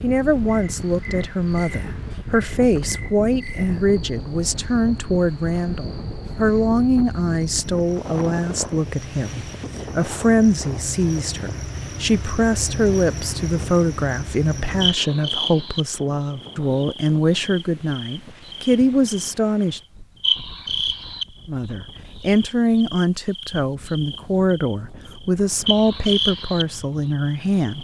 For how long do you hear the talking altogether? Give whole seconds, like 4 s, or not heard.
26 s.